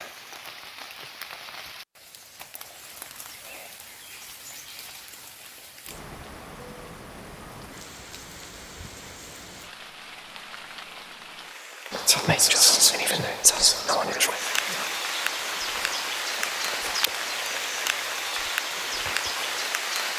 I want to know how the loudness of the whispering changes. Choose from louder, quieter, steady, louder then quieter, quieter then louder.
quieter.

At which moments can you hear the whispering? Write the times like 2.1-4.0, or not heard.
11.9-19.7.